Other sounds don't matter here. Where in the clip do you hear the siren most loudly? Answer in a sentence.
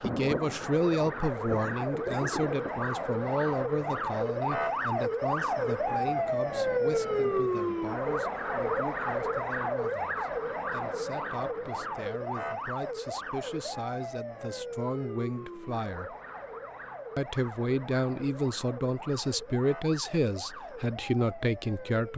The volume of the siren peaks at 7 seconds.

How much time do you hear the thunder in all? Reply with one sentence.
The thunder can be heard for 3 seconds in total.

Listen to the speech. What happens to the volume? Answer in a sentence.
The loudness of the speech goes down, then up.